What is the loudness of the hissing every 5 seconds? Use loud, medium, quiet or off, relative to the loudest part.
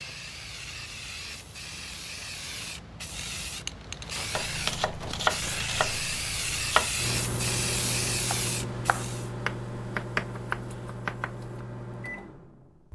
medium, loud, off.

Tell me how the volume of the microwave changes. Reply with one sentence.
The volume of the microwave goes down.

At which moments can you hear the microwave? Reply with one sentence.
You can hear the microwave from 7.0 to 12.9 s.